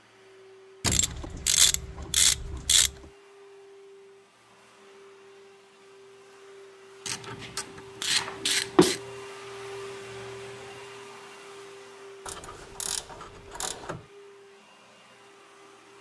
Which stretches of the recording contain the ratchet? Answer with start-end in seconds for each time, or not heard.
0.8-2.9, 7.0-9.0, 12.2-14.1.